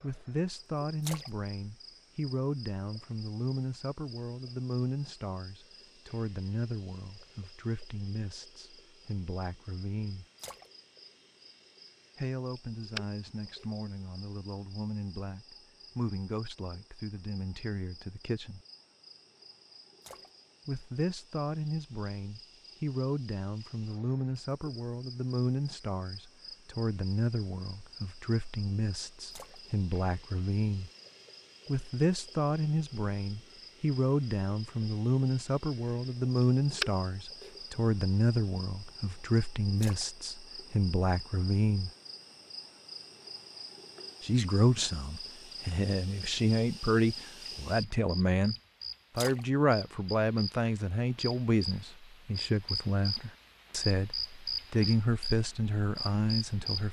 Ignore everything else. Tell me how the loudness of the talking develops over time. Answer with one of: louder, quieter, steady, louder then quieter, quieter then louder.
louder.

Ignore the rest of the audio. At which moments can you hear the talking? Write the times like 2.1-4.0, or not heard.
0.0-10.2, 12.2-18.6, 20.6-30.9, 31.6-41.9, 44.2-48.5, 49.1-56.8.